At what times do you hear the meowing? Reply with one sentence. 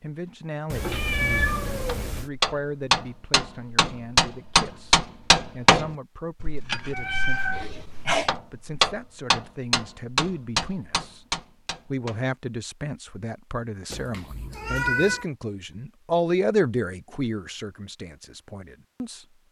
You can hear the meowing from 0.7 to 2.3 s, from 6.9 to 8.3 s and from 13.9 to 15.2 s.